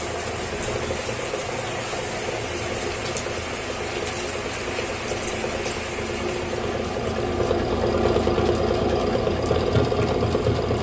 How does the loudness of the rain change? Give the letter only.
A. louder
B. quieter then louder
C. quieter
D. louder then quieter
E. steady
C.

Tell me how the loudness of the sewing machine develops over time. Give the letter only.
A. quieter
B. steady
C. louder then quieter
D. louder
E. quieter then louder
D.